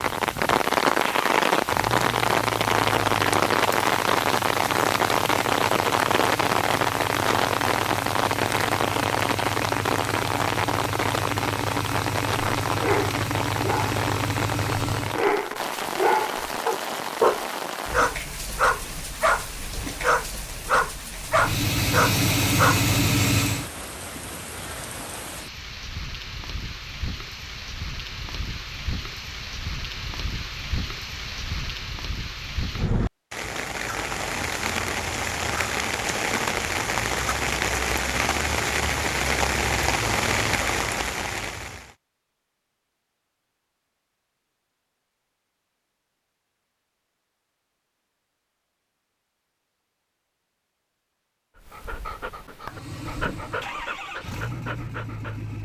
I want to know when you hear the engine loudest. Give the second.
23 s.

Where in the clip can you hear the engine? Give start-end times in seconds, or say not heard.
0.0-15.2, 21.3-23.7, 52.6-55.5.